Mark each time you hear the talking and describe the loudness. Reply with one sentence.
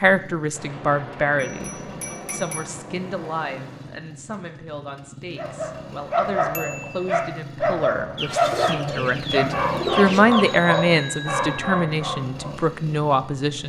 The talking can be heard from 0.0 to 13.6 s, getting quieter then louder.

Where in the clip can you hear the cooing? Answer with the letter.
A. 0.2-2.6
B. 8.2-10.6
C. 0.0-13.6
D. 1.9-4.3
B.